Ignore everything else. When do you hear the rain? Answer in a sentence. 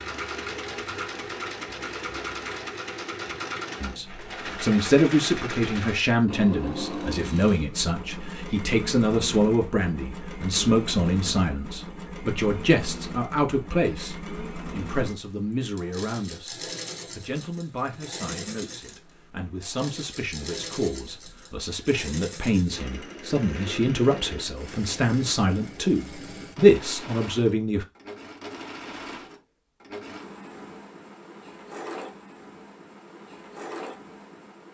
You can't hear the rain here.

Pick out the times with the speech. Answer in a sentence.
You can hear the speech from 3.8 to 27.9 s.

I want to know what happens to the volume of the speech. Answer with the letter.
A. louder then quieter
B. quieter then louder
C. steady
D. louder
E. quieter
B.